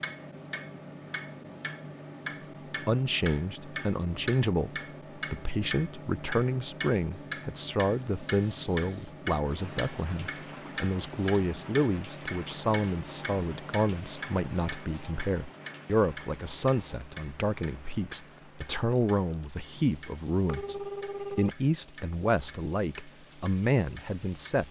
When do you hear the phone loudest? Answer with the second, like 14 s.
21 s.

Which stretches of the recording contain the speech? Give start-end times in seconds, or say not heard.
2.9-24.6.